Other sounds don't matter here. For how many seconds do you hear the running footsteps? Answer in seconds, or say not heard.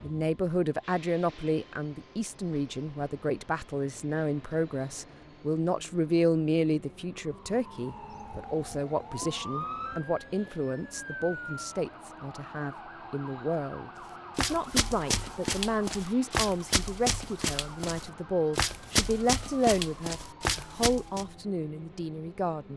7 s.